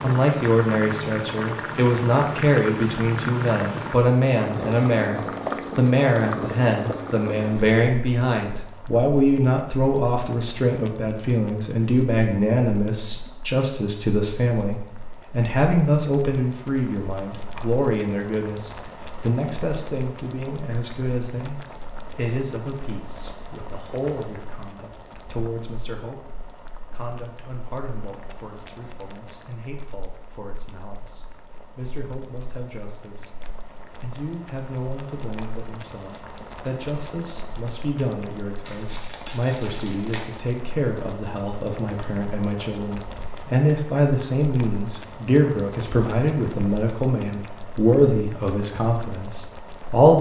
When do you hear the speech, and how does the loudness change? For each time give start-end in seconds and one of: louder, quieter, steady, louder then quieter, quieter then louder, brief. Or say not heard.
0.0-50.1 quieter then louder.